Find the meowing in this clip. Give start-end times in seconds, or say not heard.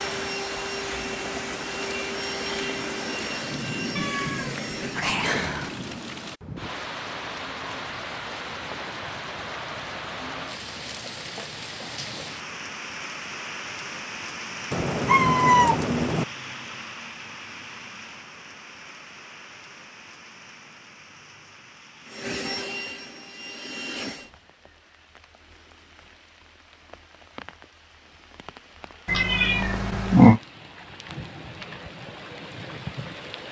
4.0-5.8, 14.7-16.2, 29.1-30.4.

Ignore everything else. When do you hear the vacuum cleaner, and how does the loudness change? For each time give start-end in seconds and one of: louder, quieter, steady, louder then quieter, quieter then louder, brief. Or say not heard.
0.0-5.1 steady
22.1-24.3 brief.